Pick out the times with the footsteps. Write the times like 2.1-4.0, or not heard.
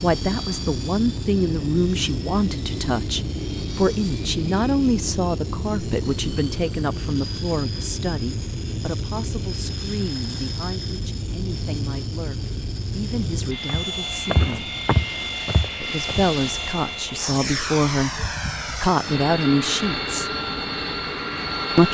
13.7-16.3.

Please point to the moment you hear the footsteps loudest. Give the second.
15 s.